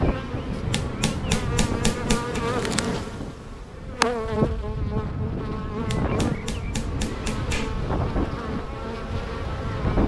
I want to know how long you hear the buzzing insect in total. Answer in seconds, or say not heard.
10 s.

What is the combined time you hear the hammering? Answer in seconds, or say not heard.
4 s.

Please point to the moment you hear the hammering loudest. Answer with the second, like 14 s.
2 s.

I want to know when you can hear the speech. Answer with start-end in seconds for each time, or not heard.
not heard.